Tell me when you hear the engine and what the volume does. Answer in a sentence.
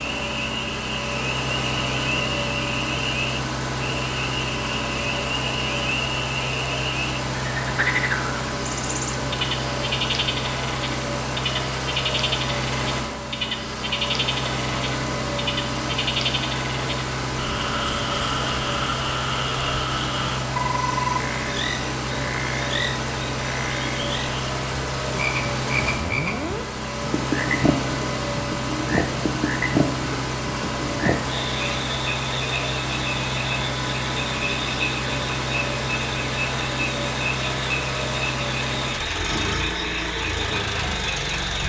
You can hear the engine from 0.0 to 41.6 s, at a steady volume.